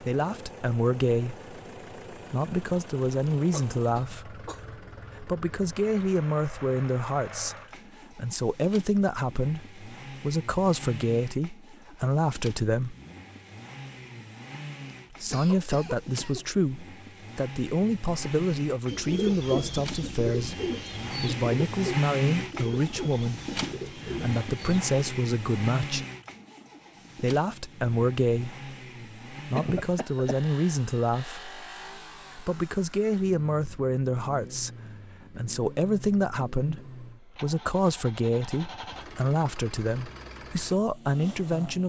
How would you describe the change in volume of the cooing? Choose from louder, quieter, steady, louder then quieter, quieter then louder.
quieter.